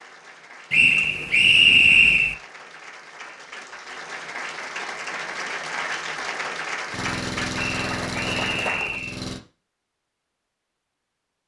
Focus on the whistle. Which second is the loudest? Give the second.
2 s.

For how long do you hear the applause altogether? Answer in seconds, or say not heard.
9 s.